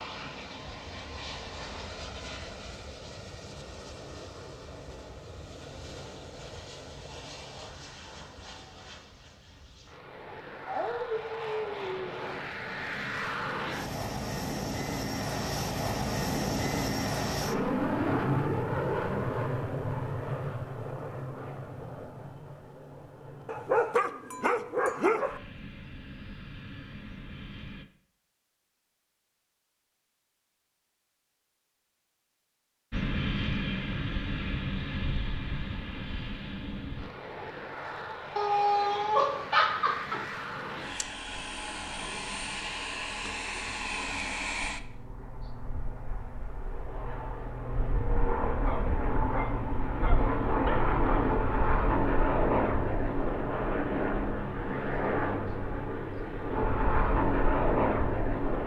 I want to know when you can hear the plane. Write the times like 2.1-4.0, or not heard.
0.0-27.9, 32.9-58.6.